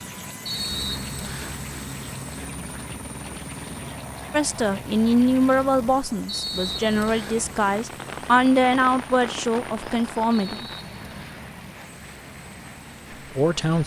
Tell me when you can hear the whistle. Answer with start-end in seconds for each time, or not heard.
0.5-1.6, 6.2-7.4, 10.3-11.4.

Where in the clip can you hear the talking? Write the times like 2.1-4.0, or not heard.
4.3-10.7, 13.3-13.8.